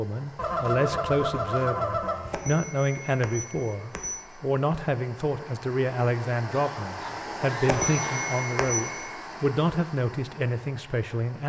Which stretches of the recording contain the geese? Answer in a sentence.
You can hear the geese from 0.3 to 2.4 s and from 6.5 to 8.2 s.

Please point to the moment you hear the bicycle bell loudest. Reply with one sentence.
The volume of the bicycle bell peaks at 8 seconds.